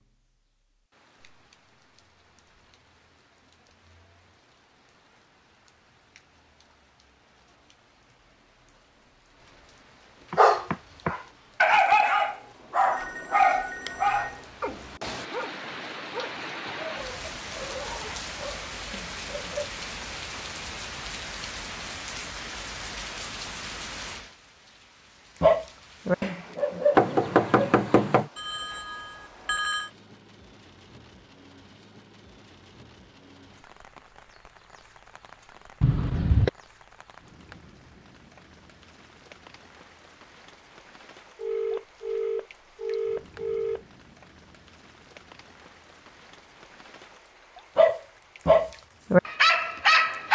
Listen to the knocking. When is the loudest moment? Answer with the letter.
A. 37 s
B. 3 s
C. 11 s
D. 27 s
D.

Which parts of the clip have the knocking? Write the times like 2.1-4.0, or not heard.
10.3-11.2, 26.9-28.3, 35.8-36.5.